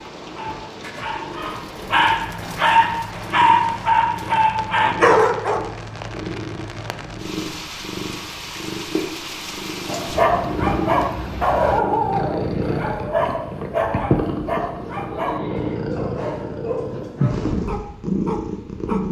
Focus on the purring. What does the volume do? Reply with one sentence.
The loudness of the purring goes up.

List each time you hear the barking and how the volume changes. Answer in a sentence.
You can hear the barking from 0.2 to 5.7 s, getting louder; and from 9.8 to 19.0 s, getting quieter.